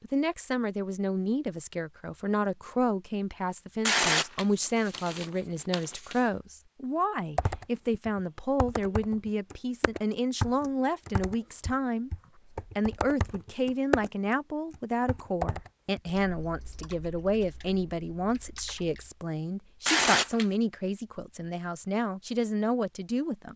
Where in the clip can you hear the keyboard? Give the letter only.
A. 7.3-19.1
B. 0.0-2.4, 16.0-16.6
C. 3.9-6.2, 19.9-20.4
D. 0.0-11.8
A.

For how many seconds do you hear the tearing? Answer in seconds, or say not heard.
3 s.